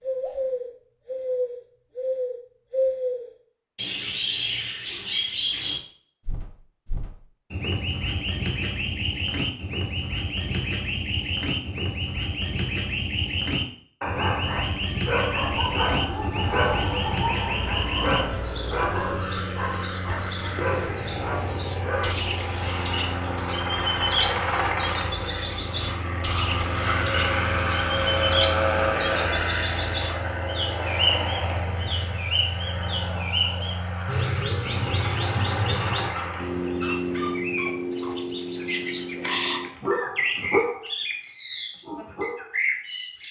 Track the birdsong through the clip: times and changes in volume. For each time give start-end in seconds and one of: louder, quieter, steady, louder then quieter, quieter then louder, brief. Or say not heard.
0.0-43.2 steady.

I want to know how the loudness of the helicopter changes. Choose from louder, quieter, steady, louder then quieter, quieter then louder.
louder then quieter.